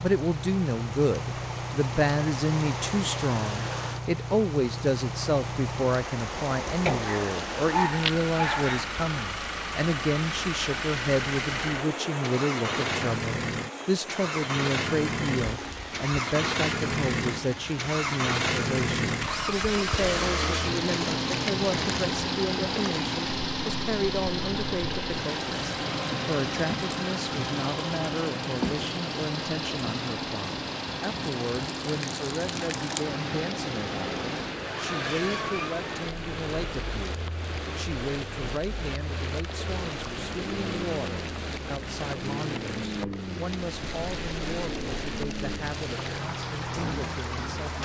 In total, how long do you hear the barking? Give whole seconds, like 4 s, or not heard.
2 s.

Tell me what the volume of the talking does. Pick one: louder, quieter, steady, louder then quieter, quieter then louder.
quieter.